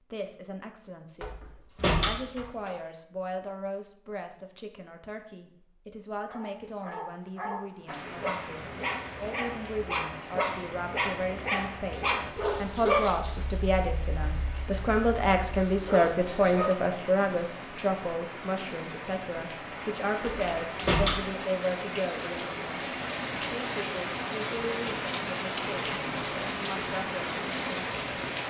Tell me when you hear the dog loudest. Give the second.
13 s.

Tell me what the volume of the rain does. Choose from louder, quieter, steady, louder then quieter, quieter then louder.
louder.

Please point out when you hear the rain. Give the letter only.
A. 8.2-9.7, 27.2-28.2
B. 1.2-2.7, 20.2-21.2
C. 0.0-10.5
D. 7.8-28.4
D.